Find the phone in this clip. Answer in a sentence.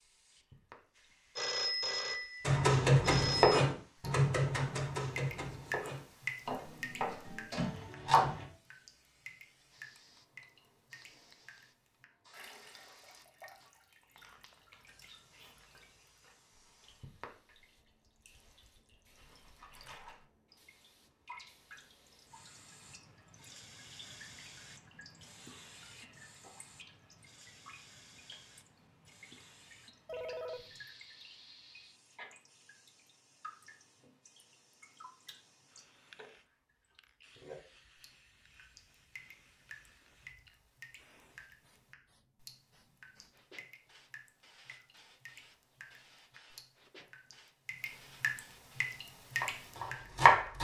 The phone can be heard from 1.4 to 3.6 s and from 30.1 to 30.9 s.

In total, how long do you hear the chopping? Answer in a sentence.
You can hear the chopping for 7 seconds altogether.